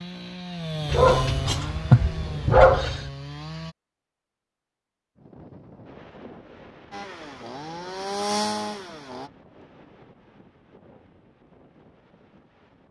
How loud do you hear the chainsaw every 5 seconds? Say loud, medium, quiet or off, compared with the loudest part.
loud, loud, off.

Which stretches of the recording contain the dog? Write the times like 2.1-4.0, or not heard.
0.9-3.0.